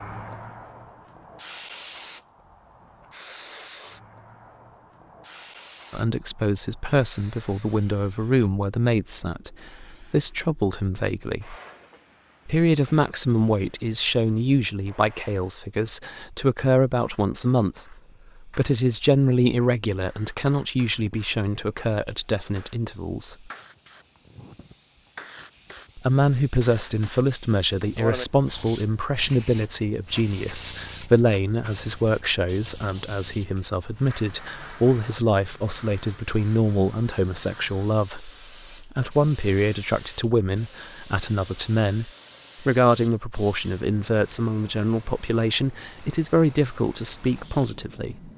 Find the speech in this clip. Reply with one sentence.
You can hear the speech from 5.9 to 11.6 s, from 12.4 to 23.5 s and from 25.9 to 48.3 s.